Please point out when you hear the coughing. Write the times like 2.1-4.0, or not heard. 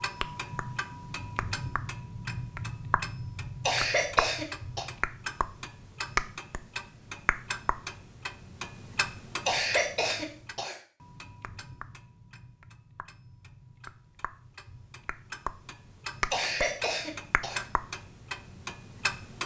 3.6-4.8, 9.4-10.8, 16.3-17.6.